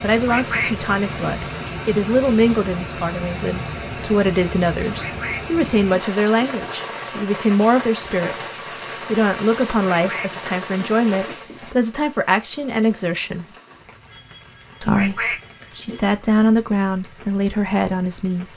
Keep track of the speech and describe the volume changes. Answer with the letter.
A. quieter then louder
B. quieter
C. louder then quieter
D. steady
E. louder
D.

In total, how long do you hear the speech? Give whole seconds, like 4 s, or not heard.
17 s.